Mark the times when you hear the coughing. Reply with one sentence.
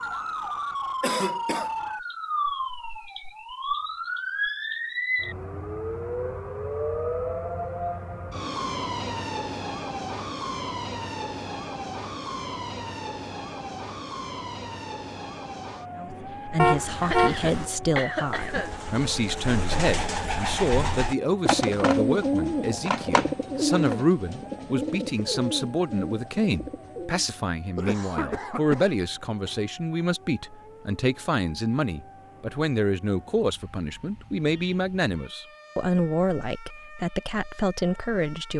You can hear the coughing from 1.0 to 1.7 s, from 17.0 to 18.8 s and from 27.8 to 29.6 s.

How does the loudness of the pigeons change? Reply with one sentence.
The volume of the pigeons goes up, then down.